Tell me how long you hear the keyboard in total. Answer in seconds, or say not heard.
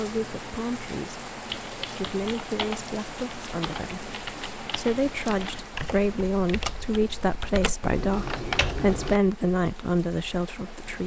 8 s.